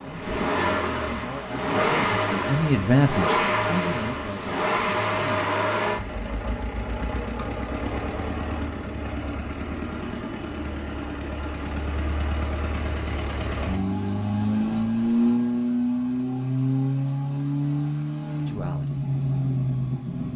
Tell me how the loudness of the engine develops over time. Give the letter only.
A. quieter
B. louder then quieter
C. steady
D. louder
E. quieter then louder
E.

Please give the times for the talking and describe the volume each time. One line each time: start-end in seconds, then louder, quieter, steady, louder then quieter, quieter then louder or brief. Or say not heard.
0.0-5.5 louder then quieter
18.4-19.0 brief.